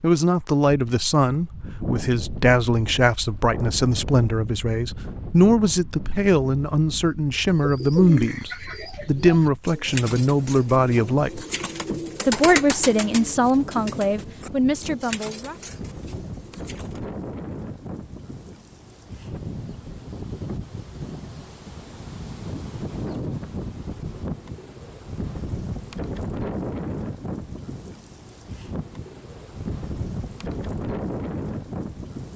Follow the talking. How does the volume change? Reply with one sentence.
The loudness of the talking stays about the same.